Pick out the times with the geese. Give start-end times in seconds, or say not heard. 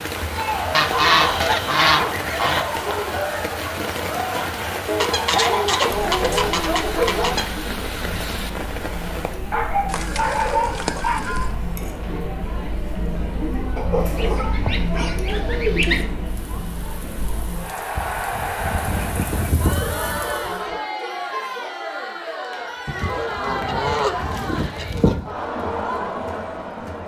0.7-2.6, 5.0-7.5, 9.8-11.5, 14.2-16.1, 18.8-20.4, 22.9-25.4.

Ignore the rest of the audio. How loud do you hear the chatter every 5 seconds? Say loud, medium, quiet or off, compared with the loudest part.
loud, medium, loud, loud, loud, loud.